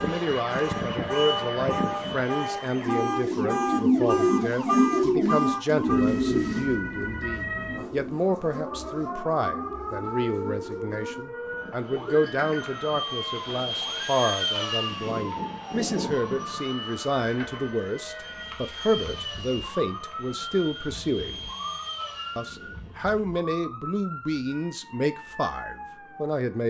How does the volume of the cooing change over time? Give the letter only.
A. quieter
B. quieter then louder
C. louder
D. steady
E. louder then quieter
A.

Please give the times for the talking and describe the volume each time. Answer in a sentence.
You can hear the talking from 0.0 to 21.4 s, at a steady volume; and from 22.4 to 26.6 s, getting quieter.